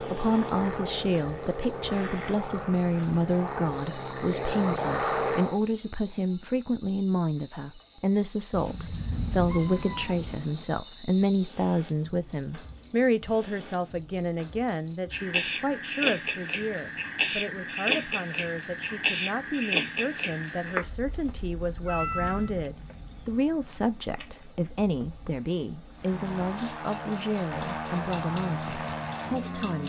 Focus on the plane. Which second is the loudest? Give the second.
5 s.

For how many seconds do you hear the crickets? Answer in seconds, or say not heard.
30 s.